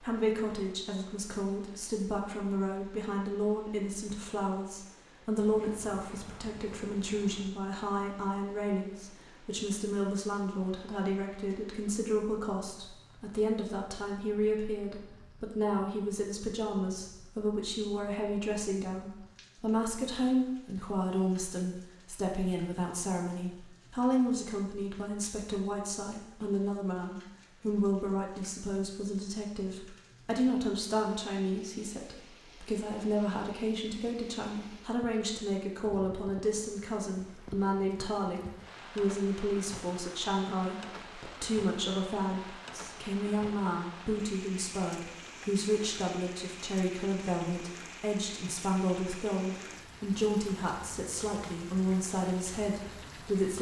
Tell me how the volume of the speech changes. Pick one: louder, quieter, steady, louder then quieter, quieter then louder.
steady.